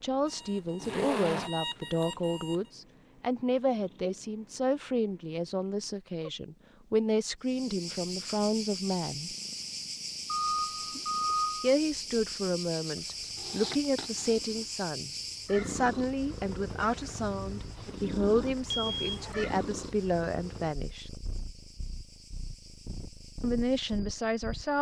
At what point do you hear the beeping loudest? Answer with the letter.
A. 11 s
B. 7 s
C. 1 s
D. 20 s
A.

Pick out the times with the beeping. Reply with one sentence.
You can hear the beeping from 0.2 to 2.6 s, from 10.2 to 11.7 s and from 18.9 to 19.3 s.